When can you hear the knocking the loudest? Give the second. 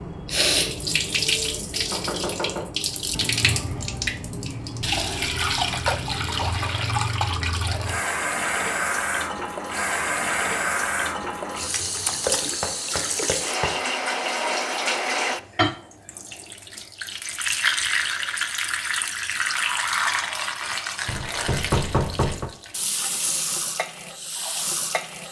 22 s.